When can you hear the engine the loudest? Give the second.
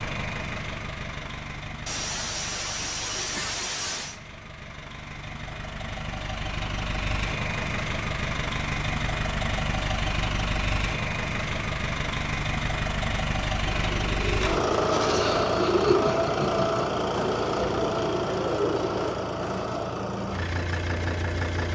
15 s.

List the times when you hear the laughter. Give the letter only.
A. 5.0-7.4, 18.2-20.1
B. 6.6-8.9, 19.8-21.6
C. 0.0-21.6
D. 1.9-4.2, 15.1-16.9
D.